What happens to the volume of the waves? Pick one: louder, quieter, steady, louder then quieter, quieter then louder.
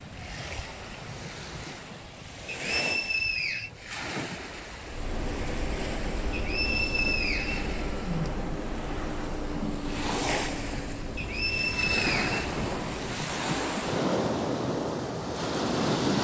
louder.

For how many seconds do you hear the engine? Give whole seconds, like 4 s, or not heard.
8 s.